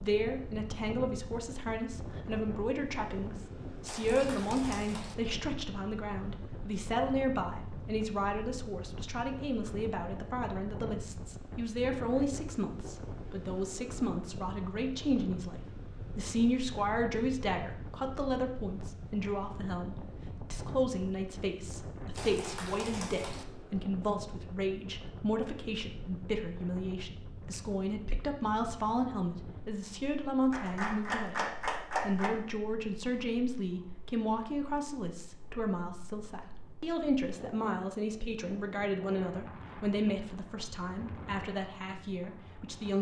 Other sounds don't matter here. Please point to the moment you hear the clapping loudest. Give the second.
32 s.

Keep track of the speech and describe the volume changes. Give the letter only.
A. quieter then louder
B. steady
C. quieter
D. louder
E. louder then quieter
B.